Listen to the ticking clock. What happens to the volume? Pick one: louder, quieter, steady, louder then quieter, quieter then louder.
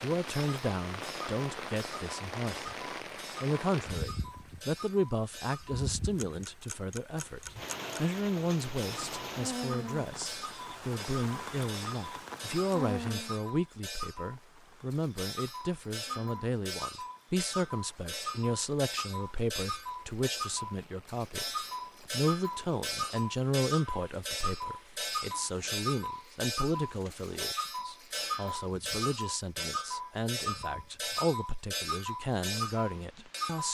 louder.